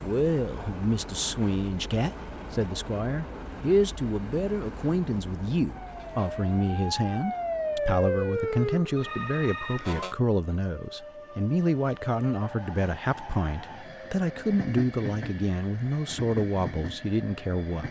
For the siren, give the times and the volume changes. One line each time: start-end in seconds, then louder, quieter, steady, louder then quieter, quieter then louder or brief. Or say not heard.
5.7-10.2 louder then quieter.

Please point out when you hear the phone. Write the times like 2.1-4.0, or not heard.
8.9-9.9.